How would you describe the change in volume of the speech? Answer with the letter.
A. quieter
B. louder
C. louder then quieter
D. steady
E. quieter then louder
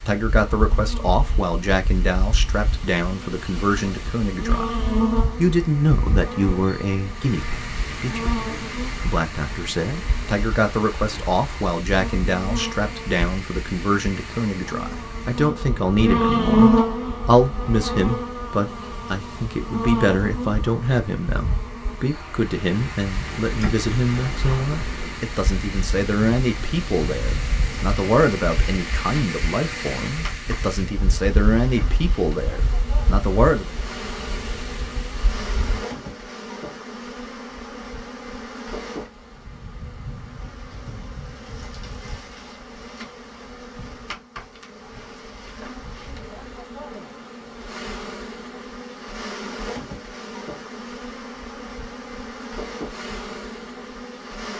D.